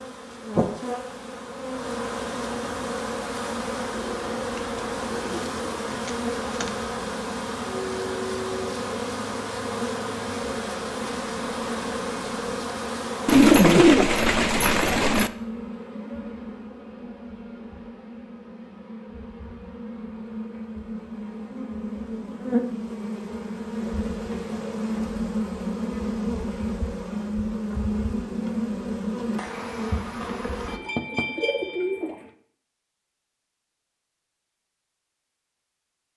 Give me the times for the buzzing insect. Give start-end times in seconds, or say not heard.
0.0-30.8.